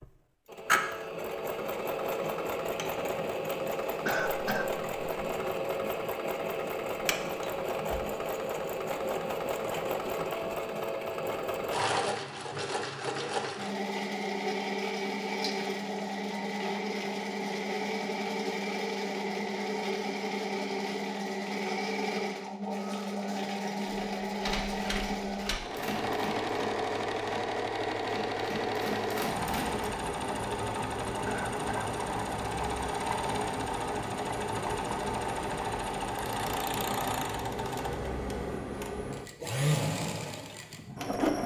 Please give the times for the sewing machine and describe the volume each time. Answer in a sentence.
You can hear the sewing machine from 0.0 to 41.4 s, at a steady volume.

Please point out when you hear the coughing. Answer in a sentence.
You can hear the coughing from 4.0 to 4.7 s and from 31.2 to 31.9 s.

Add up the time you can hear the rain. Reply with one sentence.
You can't hear the rain here.